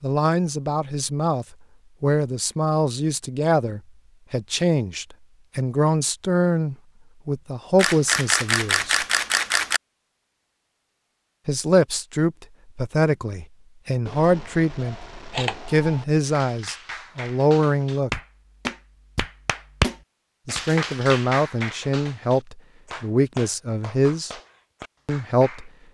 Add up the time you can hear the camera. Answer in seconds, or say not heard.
4 s.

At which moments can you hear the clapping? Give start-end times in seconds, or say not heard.
16.2-25.7.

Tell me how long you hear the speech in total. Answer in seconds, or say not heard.
20 s.